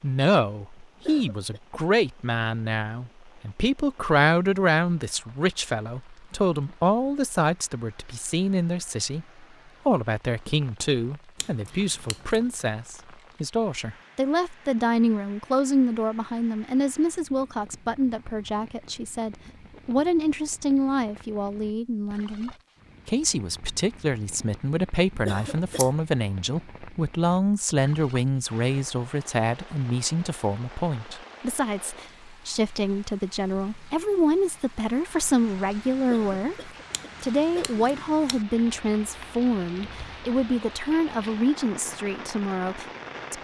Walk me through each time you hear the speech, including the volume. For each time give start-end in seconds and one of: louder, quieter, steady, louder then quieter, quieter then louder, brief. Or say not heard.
0.0-43.3 steady.